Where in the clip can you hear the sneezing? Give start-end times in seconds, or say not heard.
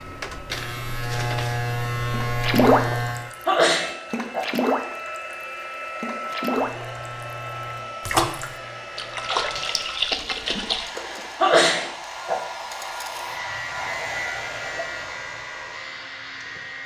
3.5-4.5, 11.4-12.4.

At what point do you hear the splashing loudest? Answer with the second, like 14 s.
3 s.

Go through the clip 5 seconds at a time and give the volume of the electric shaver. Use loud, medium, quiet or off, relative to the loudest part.
loud, quiet, medium, medium.